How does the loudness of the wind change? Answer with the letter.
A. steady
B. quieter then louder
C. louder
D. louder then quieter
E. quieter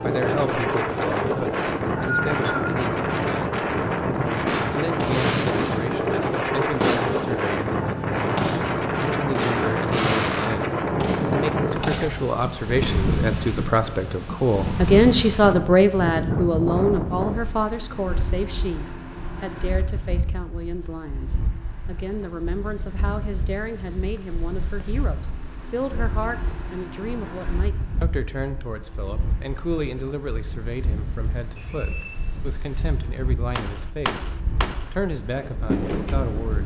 E.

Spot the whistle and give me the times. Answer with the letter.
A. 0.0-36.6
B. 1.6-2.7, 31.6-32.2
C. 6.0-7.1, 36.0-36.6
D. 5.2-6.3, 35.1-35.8
B.